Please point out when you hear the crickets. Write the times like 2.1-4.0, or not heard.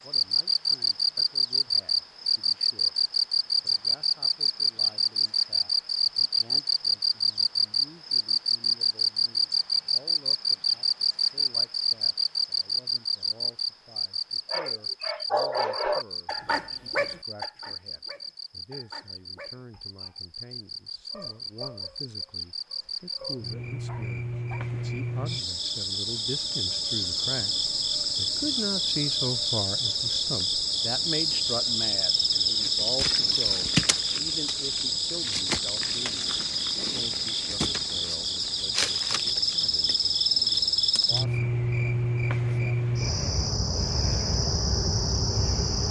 0.0-45.8.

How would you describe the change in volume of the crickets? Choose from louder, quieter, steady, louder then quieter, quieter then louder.
quieter then louder.